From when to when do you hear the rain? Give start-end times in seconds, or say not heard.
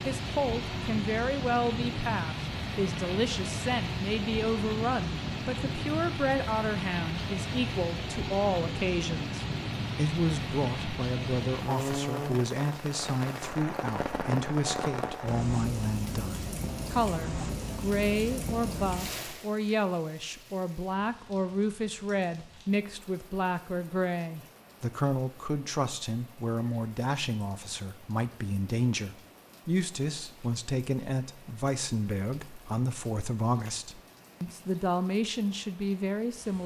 0.0-36.6.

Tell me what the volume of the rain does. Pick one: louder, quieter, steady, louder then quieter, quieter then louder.
quieter.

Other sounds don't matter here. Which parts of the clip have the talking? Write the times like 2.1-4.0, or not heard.
0.1-36.6.